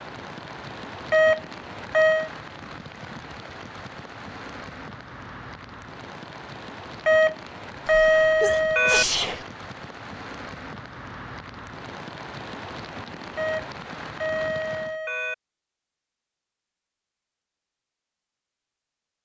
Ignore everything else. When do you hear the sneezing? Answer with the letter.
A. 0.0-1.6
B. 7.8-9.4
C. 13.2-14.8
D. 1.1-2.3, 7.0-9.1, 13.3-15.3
B.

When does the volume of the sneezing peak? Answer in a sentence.
The volume of the sneezing peaks at 9 seconds.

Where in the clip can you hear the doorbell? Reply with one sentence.
You can hear the doorbell from 1.1 to 2.3 s, from 7.0 to 9.1 s and from 13.3 to 15.3 s.